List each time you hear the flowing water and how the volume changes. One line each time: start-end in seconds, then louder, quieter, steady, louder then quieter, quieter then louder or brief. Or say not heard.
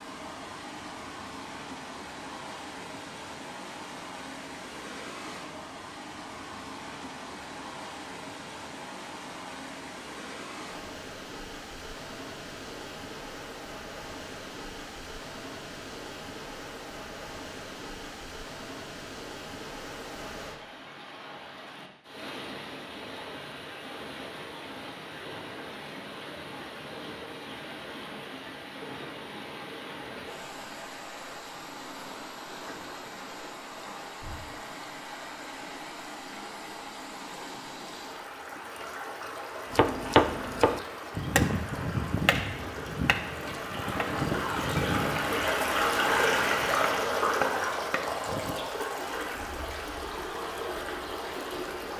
0.0-51.9 louder.